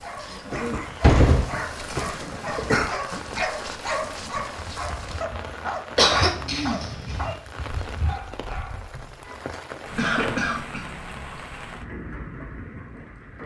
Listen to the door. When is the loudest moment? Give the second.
1 s.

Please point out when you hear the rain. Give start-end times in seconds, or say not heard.
0.0-13.4.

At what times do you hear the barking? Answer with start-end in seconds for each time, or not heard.
0.0-9.2.